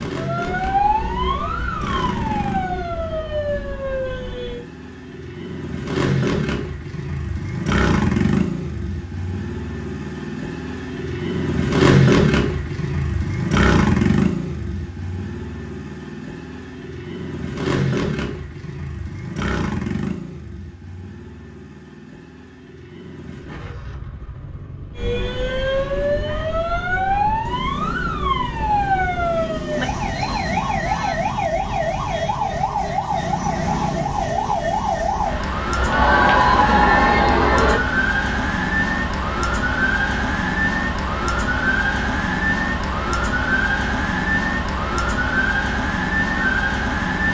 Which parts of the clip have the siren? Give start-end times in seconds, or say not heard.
0.1-4.6, 24.9-47.2.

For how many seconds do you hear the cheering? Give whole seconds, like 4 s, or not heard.
2 s.